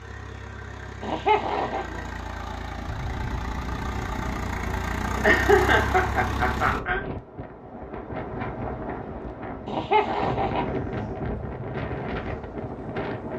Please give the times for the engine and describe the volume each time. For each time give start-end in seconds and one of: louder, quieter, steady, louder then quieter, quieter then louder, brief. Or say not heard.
0.0-6.8 louder.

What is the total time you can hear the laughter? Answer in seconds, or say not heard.
4 s.